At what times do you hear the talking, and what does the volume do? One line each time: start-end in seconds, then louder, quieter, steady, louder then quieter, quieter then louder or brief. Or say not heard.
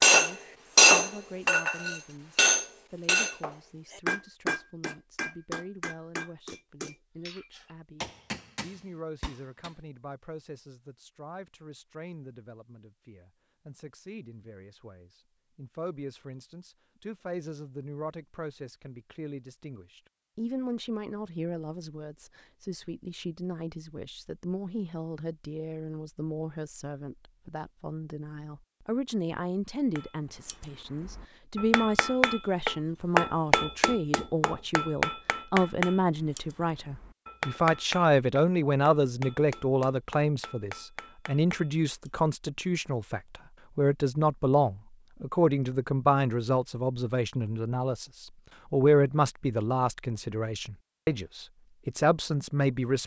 0.1-53.0 louder.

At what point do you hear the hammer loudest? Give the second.
1 s.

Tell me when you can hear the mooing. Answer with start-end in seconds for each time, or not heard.
not heard.